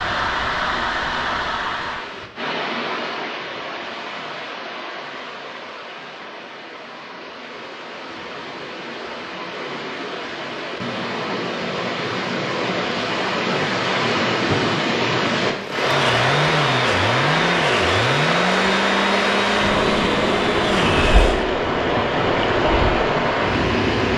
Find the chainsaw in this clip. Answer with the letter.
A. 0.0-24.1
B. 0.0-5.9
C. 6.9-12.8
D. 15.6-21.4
D.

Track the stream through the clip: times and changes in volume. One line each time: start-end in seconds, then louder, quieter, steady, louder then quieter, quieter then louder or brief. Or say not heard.
0.0-24.1 quieter then louder.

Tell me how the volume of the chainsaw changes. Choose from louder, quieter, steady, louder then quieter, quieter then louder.
steady.